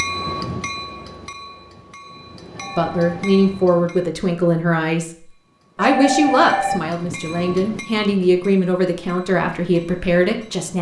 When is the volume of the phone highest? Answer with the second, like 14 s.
6 s.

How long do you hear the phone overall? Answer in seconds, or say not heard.
2 s.